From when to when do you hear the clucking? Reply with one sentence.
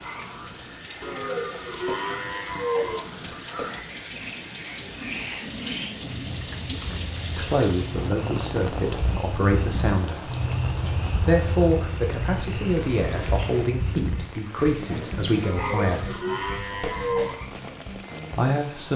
You can't hear the clucking here.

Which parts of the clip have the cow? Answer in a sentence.
You can hear the cow from 1.0 to 3.0 s and from 15.4 to 17.3 s.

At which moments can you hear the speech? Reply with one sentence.
The speech can be heard from 7.2 to 10.3 s, from 11.2 to 16.1 s and from 18.4 to 18.9 s.